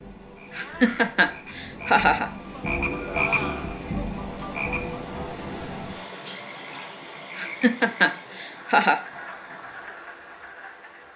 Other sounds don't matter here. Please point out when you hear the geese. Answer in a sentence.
You can't hear the geese here.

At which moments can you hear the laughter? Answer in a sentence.
You can hear the laughter from 0.5 to 2.3 s and from 7.3 to 9.0 s.